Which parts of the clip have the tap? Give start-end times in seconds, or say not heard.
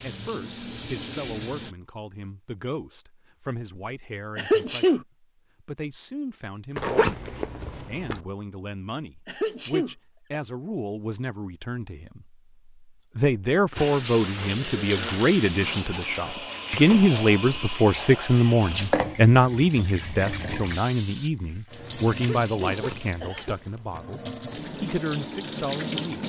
0.0-1.8, 13.8-26.2.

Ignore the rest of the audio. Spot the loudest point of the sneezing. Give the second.
5 s.